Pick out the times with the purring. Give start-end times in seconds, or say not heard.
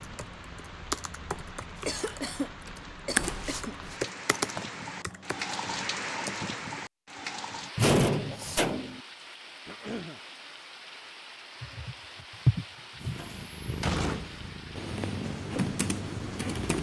12.9-16.7.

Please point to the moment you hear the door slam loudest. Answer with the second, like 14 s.
8 s.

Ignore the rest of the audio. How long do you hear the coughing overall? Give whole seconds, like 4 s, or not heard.
3 s.